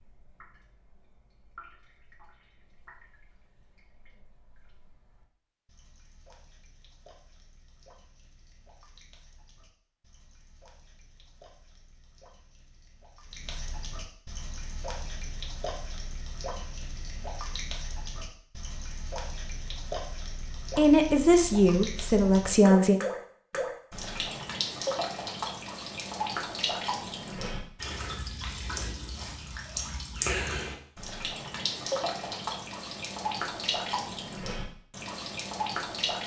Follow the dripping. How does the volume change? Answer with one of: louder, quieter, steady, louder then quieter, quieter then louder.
louder.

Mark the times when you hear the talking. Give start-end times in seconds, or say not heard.
20.8-23.0.